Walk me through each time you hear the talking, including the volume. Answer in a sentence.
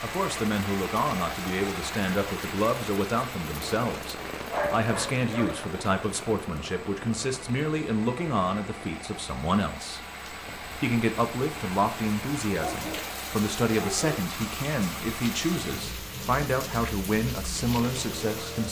The talking can be heard from 0.0 to 10.0 s, at a steady volume; and from 10.8 to 18.6 s, at a steady volume.